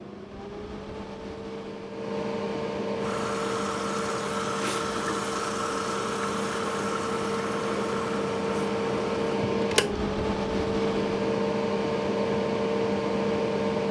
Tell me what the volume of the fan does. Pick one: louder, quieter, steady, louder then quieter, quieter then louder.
louder.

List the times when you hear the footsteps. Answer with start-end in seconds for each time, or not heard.
not heard.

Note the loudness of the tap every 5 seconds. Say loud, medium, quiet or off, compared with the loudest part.
loud, loud, off.